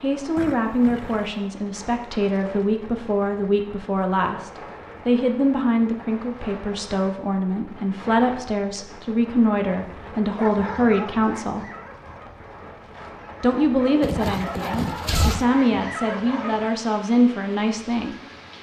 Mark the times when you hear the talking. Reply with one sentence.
You can hear the talking from 0.0 to 11.7 s and from 13.4 to 18.1 s.